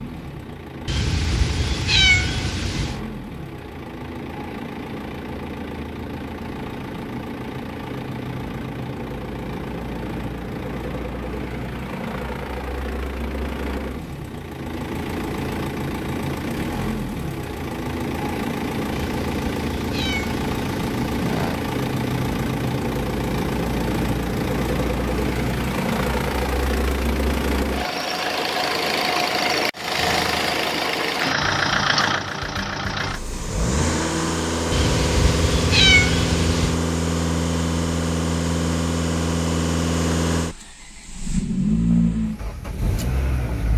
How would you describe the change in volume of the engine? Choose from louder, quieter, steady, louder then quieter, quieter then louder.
louder.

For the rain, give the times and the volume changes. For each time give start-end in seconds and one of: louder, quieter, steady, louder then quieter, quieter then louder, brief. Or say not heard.
not heard.